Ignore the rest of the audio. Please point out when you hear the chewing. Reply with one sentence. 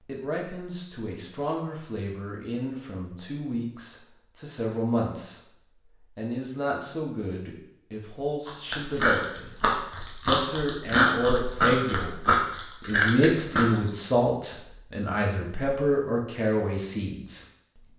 You can hear the chewing from 8.4 to 13.9 s.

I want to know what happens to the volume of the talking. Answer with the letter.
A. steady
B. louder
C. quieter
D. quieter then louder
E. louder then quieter
B.